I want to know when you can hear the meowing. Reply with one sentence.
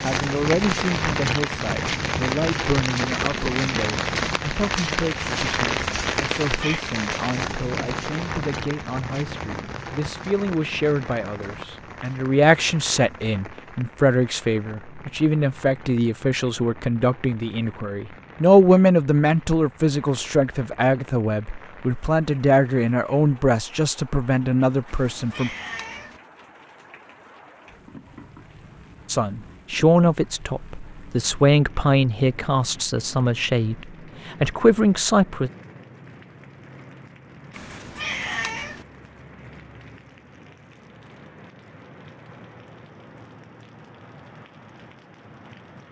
The meowing can be heard from 6.4 to 6.8 s, from 24.9 to 26.2 s and from 37.5 to 38.9 s.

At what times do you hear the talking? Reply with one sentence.
The talking can be heard from 0.0 to 25.5 s and from 29.1 to 35.5 s.